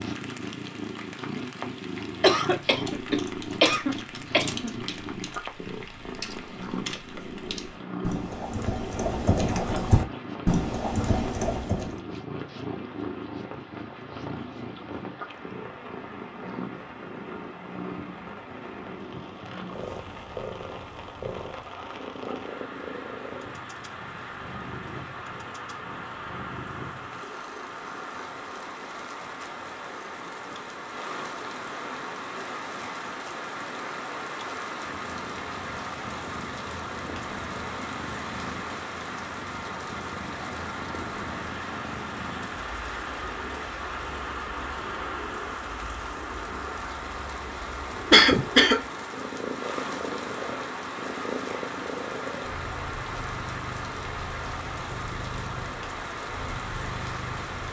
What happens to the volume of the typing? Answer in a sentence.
The loudness of the typing goes up.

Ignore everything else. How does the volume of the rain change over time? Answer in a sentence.
The volume of the rain goes up.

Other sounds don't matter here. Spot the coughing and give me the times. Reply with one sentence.
You can hear the coughing from 2.2 to 4.9 s and from 48.1 to 48.8 s.